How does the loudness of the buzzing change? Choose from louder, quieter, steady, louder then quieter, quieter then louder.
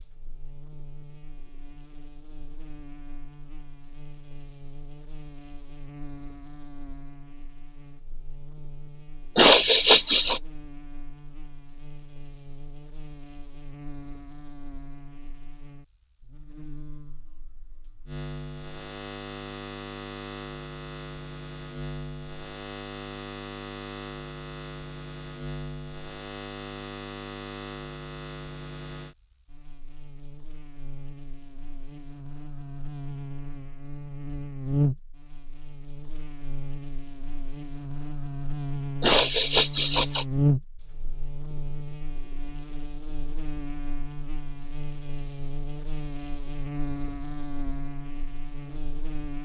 louder.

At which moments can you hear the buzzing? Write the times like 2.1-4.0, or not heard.
0.0-49.4.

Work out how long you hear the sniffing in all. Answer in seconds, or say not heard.
2 s.